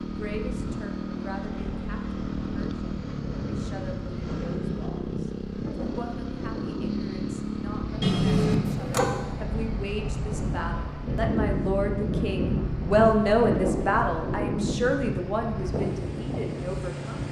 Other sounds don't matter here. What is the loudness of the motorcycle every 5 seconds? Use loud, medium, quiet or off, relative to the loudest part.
loud, loud, medium, loud.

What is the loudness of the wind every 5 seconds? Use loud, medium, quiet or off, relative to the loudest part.
medium, medium, loud, medium.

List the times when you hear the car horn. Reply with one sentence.
You can hear the car horn from 8.0 to 9.2 s.